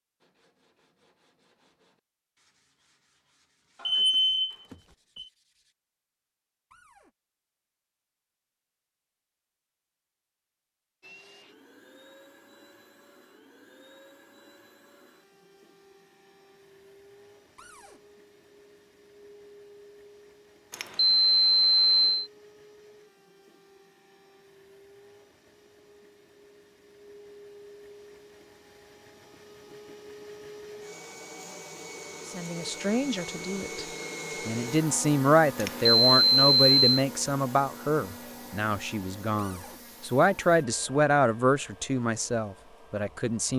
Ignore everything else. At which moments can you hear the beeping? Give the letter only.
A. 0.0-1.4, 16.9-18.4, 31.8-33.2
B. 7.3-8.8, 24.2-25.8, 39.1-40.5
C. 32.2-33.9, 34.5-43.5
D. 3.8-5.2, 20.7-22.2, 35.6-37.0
D.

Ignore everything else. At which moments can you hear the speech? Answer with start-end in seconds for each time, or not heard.
32.2-33.9, 34.5-43.5.